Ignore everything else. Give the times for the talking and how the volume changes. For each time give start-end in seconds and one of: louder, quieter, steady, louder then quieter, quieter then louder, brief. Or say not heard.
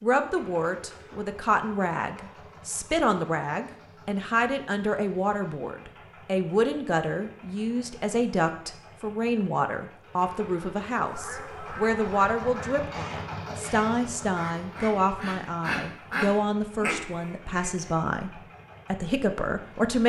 0.0-20.0 steady.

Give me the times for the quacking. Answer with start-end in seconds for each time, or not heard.
11.1-17.9.